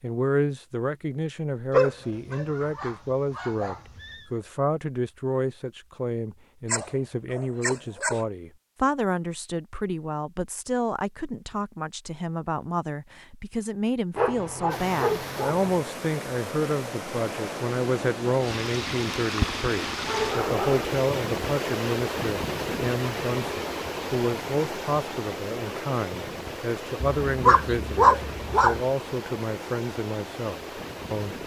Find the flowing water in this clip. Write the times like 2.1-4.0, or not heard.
14.7-31.4.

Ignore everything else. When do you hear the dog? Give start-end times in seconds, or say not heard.
1.7-4.2, 6.7-8.2, 14.2-15.9, 19.4-20.9, 27.2-28.8.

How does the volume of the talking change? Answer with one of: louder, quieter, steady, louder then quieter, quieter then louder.
steady.